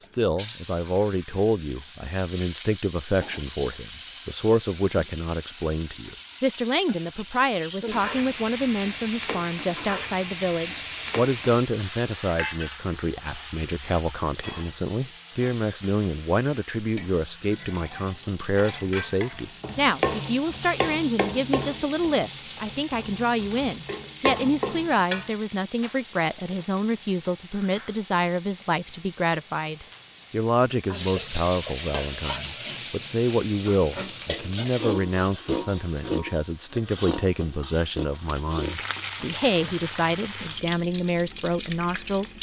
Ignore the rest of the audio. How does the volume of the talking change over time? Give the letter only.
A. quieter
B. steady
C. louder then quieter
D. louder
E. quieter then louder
B.